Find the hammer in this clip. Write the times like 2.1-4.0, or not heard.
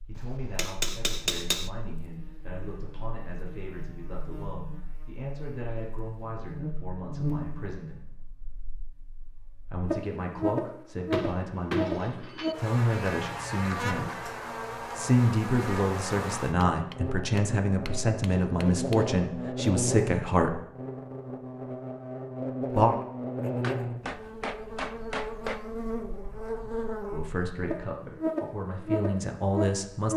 0.1-1.7, 11.1-12.6, 16.6-19.1, 23.6-25.6.